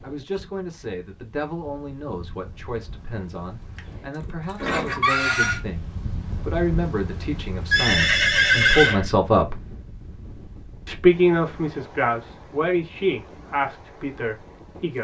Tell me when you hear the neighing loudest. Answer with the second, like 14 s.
9 s.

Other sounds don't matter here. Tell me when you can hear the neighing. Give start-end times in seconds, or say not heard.
3.8-5.6, 7.7-9.1.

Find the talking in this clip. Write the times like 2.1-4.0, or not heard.
0.0-9.6, 10.8-14.9.